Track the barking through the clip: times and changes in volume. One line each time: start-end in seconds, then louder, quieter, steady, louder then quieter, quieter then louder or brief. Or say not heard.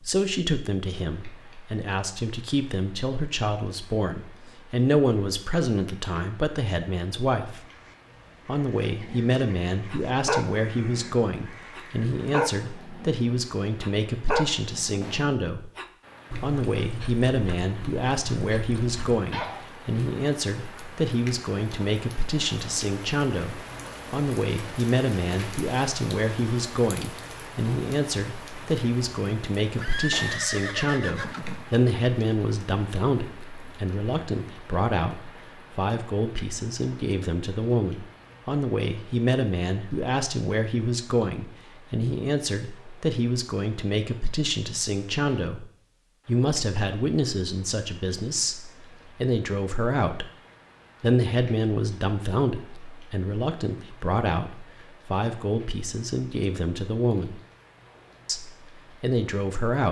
8.8-19.6 quieter.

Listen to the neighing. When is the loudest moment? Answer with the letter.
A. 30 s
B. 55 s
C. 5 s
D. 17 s
A.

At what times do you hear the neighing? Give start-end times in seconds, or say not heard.
29.8-31.6.